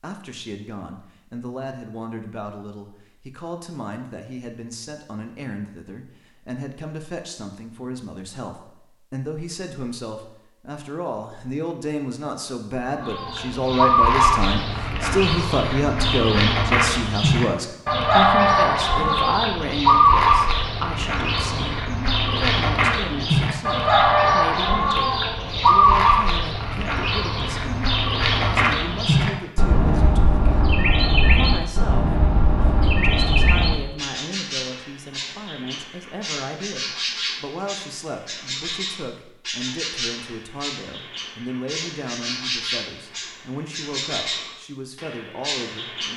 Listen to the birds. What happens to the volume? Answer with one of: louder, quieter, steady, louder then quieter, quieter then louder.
quieter.